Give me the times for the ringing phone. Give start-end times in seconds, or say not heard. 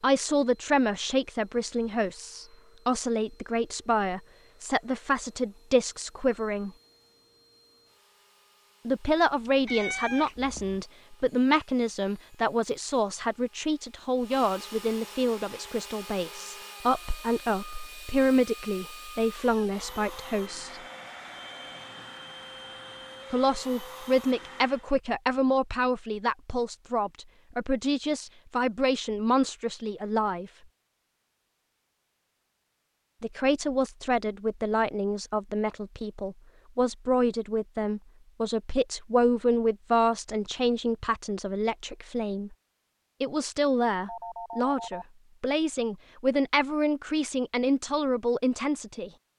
20.6-22.0, 44.0-45.0.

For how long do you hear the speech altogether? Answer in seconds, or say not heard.
41 s.